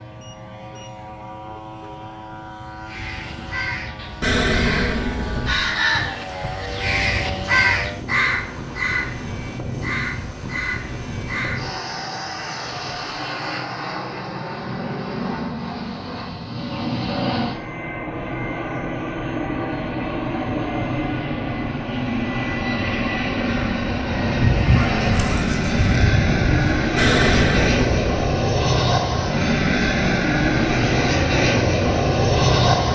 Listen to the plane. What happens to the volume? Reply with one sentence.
The loudness of the plane goes up.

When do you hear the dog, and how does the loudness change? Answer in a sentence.
The dog can't be heard in this clip.